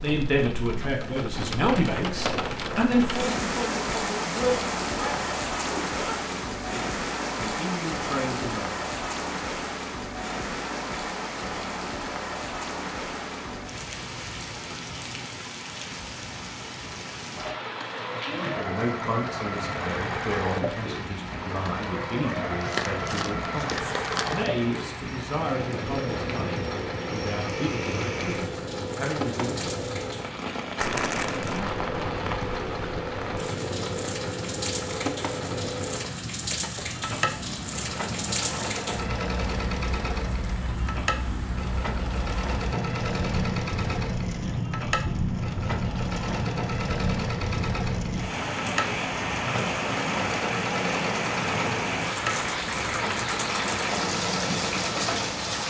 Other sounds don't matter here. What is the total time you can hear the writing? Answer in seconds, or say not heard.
not heard.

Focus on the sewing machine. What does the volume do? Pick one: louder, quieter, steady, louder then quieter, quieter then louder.
steady.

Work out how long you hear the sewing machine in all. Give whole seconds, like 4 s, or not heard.
38 s.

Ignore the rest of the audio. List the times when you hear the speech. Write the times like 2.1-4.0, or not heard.
0.0-8.8, 18.6-29.6.